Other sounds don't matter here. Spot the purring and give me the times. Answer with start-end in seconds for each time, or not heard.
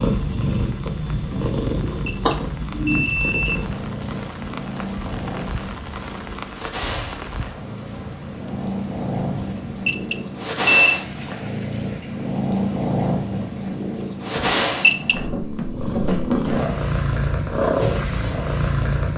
0.0-19.1.